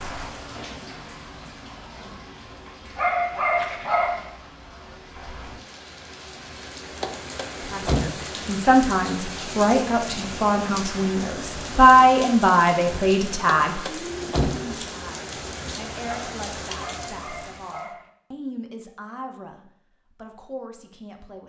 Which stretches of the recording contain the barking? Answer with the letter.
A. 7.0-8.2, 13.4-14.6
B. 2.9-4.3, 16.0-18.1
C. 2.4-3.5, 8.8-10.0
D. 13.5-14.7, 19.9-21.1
B.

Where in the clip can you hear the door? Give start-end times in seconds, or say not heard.
7.0-8.2, 13.4-14.6.